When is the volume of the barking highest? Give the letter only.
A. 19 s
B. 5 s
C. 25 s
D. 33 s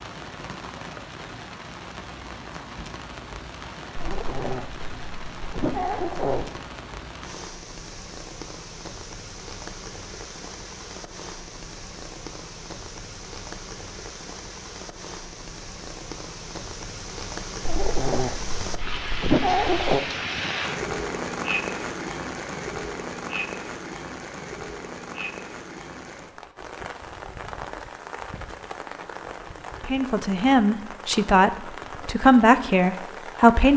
A.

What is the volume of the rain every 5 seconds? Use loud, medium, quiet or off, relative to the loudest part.
medium, medium, medium, loud, loud, medium, medium.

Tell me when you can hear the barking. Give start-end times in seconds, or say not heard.
4.0-6.5, 17.6-20.1.